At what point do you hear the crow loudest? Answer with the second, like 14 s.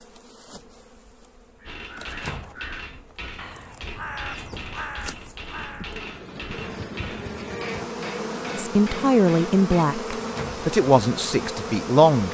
4 s.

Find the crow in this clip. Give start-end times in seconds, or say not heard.
1.6-6.0.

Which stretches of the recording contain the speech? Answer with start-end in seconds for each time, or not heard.
8.6-12.2.